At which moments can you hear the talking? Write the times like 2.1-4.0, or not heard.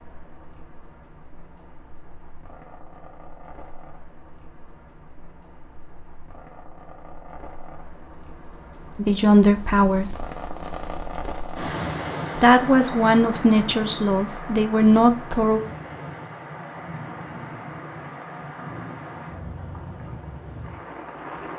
8.9-10.2, 12.3-15.6.